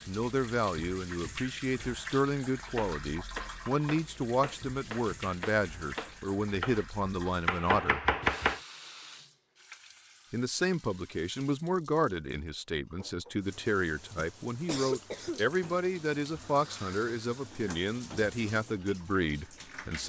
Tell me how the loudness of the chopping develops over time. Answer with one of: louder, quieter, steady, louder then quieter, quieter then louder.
louder.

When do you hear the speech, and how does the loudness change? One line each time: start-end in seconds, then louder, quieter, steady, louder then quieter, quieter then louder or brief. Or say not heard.
0.1-8.0 steady
10.3-20.0 steady.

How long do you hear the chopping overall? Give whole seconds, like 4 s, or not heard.
6 s.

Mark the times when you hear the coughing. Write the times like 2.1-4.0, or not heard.
14.2-15.4.